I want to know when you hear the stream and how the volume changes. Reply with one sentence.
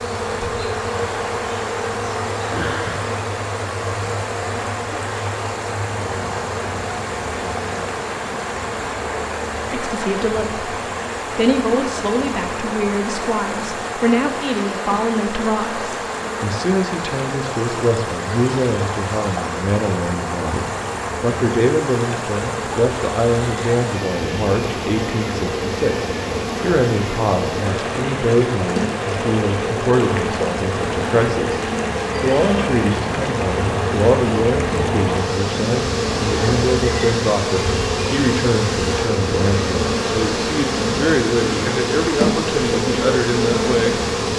You can hear the stream from 0.0 to 44.3 s, at a steady volume.